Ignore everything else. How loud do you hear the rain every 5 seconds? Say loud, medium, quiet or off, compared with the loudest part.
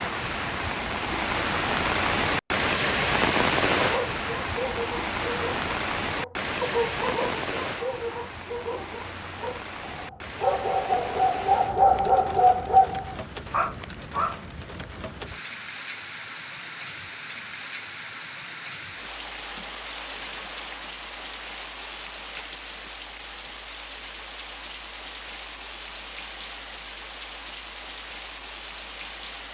loud, medium, quiet, quiet, quiet, quiet.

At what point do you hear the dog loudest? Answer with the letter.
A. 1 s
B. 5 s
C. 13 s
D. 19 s
C.